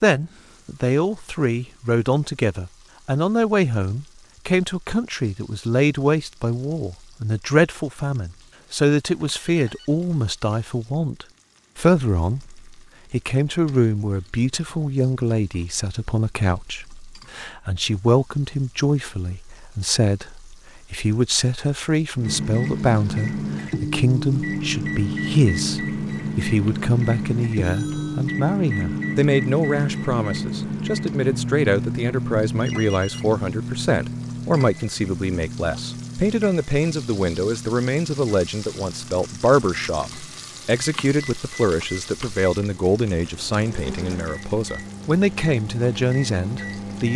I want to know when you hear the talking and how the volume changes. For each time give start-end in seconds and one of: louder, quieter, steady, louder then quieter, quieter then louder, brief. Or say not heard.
0.0-47.1 steady.